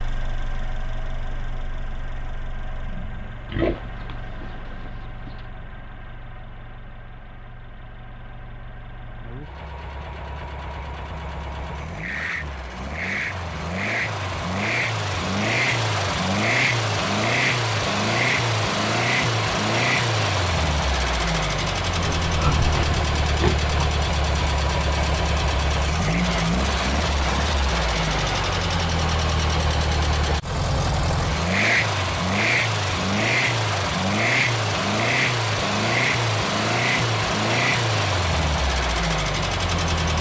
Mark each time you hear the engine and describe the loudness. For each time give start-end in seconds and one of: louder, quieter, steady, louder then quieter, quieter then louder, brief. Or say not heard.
0.0-40.1 louder.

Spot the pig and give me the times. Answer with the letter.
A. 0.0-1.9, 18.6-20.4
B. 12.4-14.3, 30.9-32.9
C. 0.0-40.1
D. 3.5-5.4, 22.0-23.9
D.